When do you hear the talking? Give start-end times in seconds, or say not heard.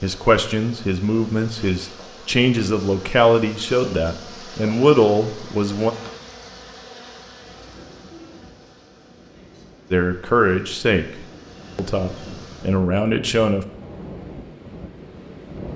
0.0-5.9, 9.9-13.7.